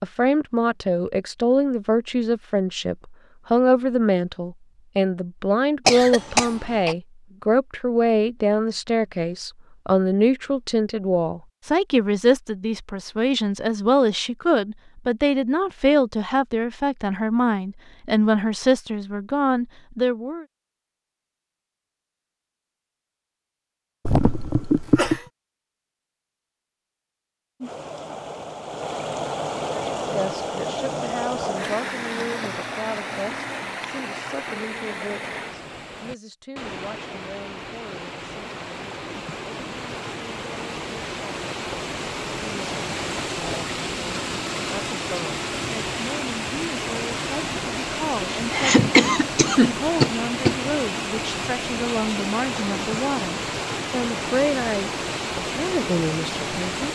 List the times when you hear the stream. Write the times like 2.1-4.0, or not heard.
27.6-56.9.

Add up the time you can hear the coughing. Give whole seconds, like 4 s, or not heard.
5 s.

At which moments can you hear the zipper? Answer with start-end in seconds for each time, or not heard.
not heard.